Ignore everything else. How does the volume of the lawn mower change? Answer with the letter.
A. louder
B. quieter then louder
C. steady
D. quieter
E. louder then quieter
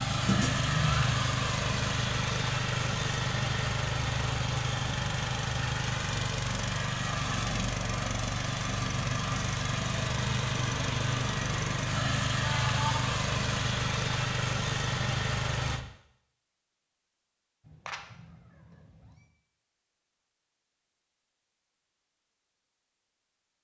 C.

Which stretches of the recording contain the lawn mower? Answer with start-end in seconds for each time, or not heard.
0.0-15.8.